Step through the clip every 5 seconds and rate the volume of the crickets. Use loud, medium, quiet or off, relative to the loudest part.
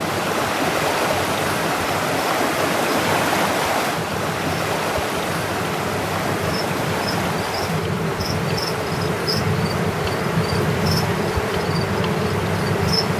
medium, loud, loud.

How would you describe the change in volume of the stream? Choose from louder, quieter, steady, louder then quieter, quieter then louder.
quieter.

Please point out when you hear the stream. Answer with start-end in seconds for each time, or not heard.
0.0-13.1.